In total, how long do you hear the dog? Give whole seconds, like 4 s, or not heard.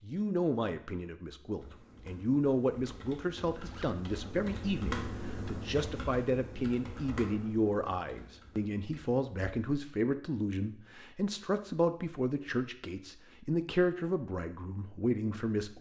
not heard.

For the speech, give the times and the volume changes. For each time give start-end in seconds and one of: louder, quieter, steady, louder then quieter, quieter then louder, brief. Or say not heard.
0.0-15.7 steady.